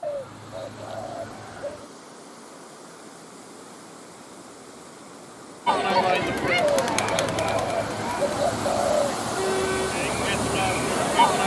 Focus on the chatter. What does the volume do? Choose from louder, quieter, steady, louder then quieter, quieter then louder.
quieter then louder.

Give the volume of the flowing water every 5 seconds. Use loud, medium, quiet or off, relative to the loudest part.
quiet, loud, loud.